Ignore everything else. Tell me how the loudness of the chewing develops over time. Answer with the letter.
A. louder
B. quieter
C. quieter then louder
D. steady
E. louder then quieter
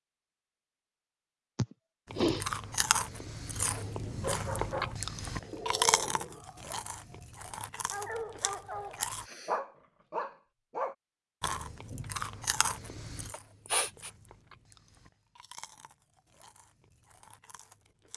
B.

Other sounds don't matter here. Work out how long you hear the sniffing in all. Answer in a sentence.
The sniffing can be heard for 3 seconds in total.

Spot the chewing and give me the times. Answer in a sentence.
You can hear the chewing from 2.1 to 9.2 s and from 11.4 to 18.1 s.